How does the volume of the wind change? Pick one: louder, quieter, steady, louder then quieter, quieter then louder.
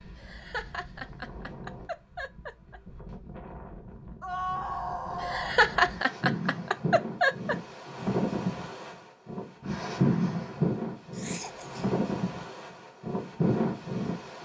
louder.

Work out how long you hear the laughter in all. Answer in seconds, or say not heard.
6 s.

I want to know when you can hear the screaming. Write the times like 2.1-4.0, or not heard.
4.2-5.6.